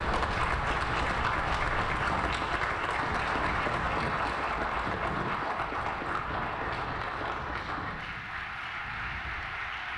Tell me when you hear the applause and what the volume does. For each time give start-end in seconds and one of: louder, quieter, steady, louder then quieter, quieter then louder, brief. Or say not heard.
0.0-9.9 quieter.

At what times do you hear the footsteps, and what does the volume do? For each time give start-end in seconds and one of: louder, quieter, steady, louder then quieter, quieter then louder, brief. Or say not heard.
not heard.